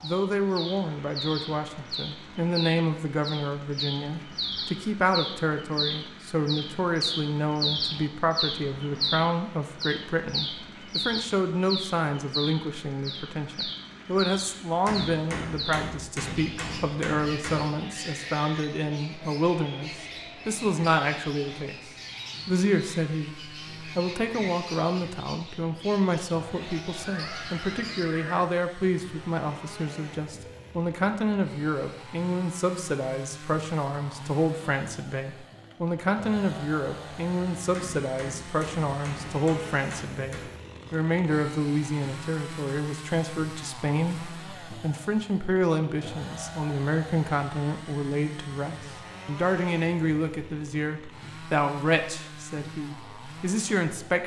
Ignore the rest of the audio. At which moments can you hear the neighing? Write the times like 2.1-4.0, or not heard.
27.0-28.4.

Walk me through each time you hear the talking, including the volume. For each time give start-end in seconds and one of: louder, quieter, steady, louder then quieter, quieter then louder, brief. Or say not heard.
0.0-54.2 steady.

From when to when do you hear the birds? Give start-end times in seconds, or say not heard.
0.0-28.1.